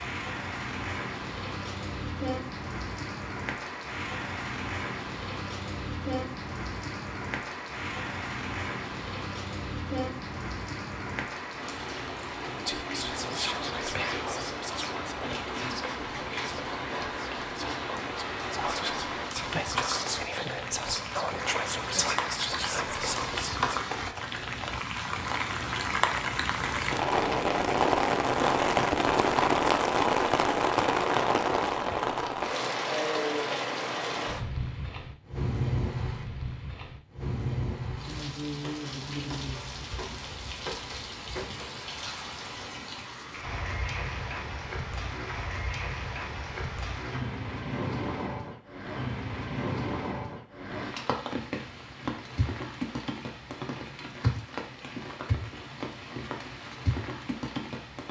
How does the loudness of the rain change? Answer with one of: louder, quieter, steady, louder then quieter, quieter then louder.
louder then quieter.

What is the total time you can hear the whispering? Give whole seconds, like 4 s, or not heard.
11 s.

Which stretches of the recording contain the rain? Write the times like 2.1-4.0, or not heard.
0.0-58.0.